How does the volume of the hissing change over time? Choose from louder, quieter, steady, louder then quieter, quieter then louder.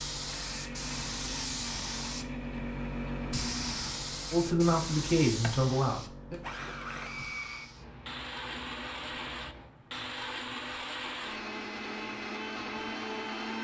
quieter.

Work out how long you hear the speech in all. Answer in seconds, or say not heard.
2 s.